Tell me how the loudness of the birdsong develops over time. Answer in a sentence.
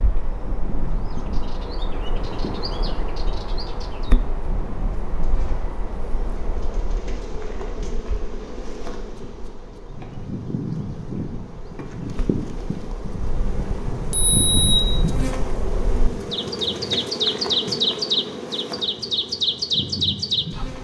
The volume of the birdsong goes down, then up.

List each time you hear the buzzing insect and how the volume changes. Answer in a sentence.
The buzzing insect can be heard from 0.0 to 20.7 s, getting louder.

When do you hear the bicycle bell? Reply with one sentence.
You can hear the bicycle bell from 13.2 to 14.8 s.